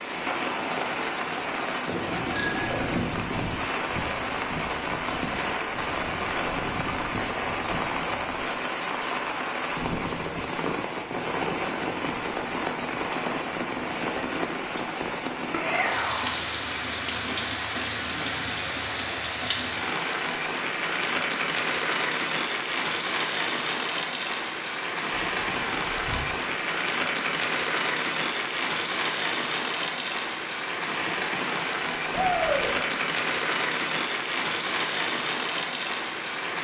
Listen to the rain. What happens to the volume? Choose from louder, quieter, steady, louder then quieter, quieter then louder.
steady.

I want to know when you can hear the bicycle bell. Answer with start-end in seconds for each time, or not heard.
1.9-3.0, 25.1-26.3.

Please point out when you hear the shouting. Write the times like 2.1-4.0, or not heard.
15.5-16.4, 32.1-32.7.